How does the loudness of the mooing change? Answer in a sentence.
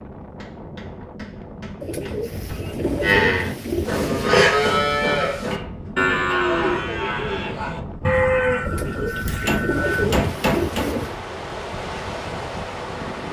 The loudness of the mooing goes down.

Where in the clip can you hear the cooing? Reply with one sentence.
You can hear the cooing from 1.8 to 4.3 s and from 8.7 to 11.2 s.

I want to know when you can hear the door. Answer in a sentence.
You can't hear the door here.